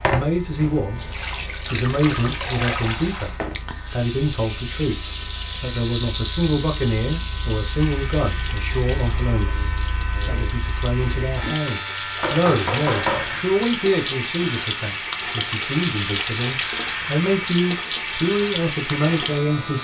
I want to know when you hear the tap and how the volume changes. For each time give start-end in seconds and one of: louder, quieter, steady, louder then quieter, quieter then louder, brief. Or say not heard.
0.0-19.7 quieter then louder.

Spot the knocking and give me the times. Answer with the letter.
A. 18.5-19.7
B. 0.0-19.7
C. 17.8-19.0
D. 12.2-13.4
D.